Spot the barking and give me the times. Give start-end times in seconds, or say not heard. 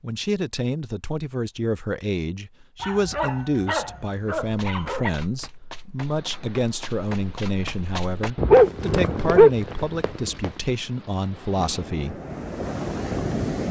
2.8-5.1, 8.3-10.3.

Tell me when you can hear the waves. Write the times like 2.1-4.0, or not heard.
6.0-13.6.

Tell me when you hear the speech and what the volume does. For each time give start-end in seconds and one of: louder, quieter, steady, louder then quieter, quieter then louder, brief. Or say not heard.
0.0-12.2 steady.